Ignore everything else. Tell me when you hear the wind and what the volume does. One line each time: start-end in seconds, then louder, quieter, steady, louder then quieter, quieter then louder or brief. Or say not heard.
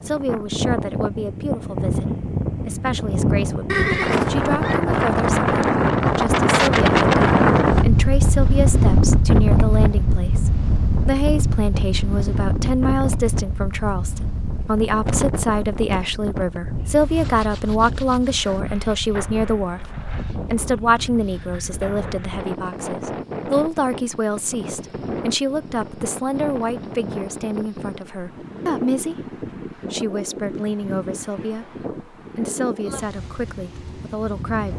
0.0-34.7 quieter.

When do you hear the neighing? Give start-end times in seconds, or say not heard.
3.6-4.8.